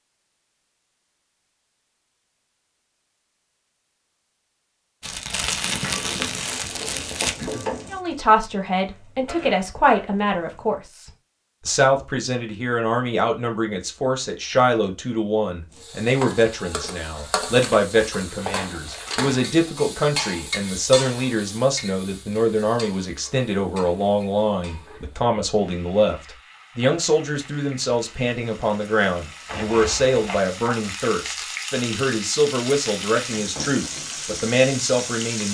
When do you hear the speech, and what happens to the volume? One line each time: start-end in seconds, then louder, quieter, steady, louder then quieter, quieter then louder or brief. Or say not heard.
7.9-35.4 steady.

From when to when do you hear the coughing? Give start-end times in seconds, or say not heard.
7.3-7.8.